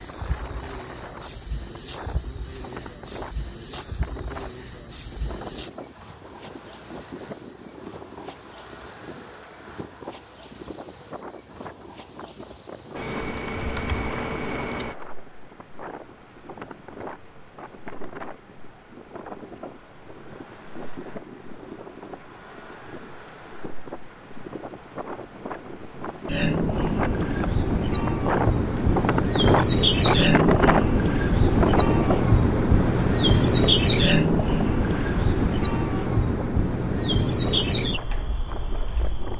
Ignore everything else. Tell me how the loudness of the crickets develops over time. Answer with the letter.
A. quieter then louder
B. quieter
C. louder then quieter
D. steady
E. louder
A.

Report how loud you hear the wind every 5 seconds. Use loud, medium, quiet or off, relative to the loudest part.
quiet, quiet, quiet, quiet, quiet, loud, loud, quiet.